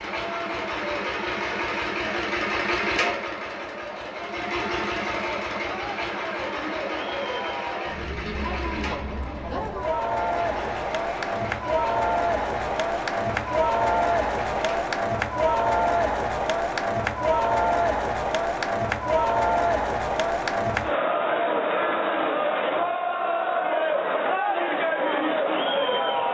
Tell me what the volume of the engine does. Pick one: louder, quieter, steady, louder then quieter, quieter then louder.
quieter.